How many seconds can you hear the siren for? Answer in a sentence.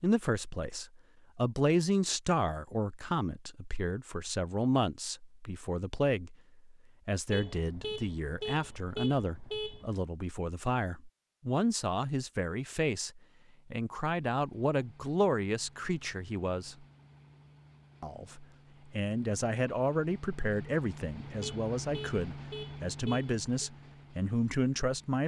You can't hear the siren here.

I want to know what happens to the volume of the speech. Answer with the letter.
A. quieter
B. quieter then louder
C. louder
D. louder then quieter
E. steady
E.